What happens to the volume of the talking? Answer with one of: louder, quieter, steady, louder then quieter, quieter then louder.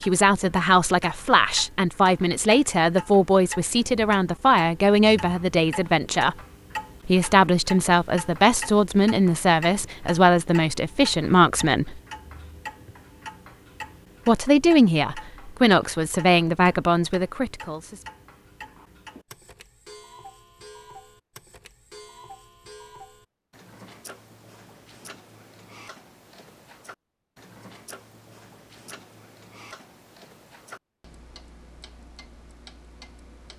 steady.